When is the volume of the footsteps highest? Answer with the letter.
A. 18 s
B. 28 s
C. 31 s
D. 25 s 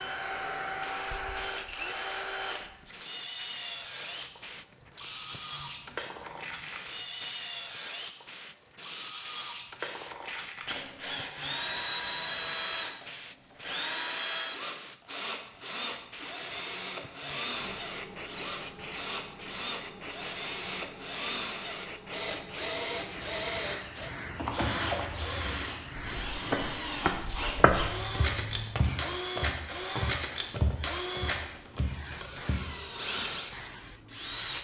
B.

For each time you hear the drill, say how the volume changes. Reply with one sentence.
The drill can be heard from 0.0 to 34.6 s, at a steady volume.